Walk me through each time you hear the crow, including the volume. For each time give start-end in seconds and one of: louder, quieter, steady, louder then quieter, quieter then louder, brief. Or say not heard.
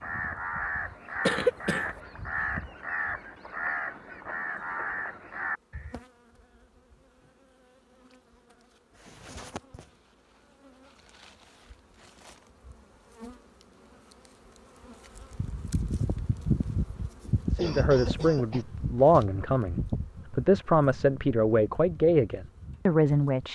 0.0-6.0 steady.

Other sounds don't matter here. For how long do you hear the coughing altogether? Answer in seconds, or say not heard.
3 s.